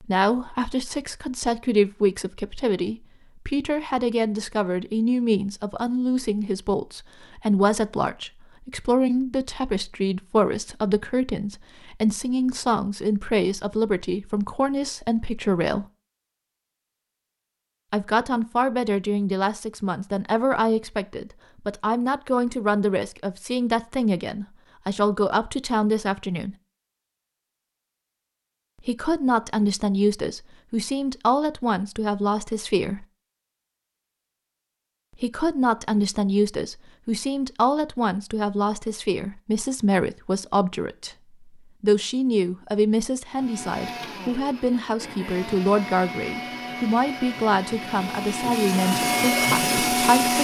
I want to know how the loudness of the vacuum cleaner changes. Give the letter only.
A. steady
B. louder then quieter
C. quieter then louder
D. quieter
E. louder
E.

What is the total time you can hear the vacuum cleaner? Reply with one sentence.
You can hear the vacuum cleaner for 7 seconds altogether.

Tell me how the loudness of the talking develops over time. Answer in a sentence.
The volume of the talking stays about the same.